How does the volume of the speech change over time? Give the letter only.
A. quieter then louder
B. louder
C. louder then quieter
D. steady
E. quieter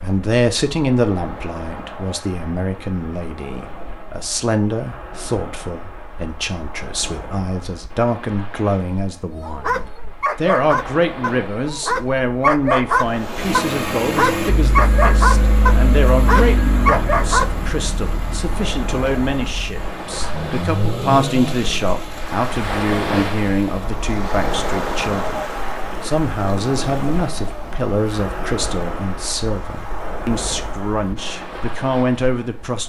D.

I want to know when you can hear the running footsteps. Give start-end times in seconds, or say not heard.
not heard.